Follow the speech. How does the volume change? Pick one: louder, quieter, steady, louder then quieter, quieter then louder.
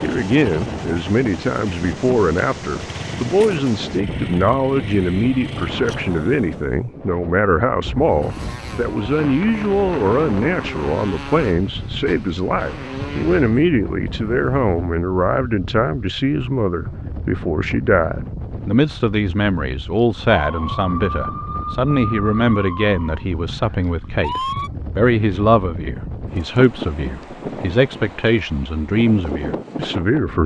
steady.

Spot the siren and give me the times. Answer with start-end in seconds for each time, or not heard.
20.3-24.7.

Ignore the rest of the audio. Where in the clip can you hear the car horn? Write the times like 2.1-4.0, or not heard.
not heard.